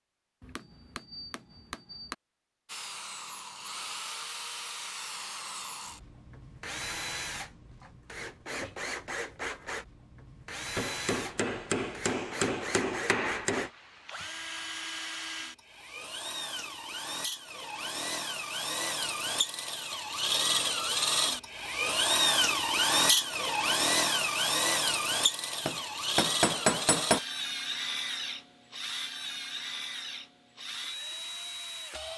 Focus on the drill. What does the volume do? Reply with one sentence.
The volume of the drill goes up, then down.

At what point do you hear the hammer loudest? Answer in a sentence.
The loudest moment of the hammer is at 27 seconds.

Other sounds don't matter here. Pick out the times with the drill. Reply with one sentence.
You can hear the drill from 2.6 to 32.1 s.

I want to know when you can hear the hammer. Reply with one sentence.
You can hear the hammer from 0.4 to 2.1 s, from 10.8 to 13.7 s and from 25.6 to 27.2 s.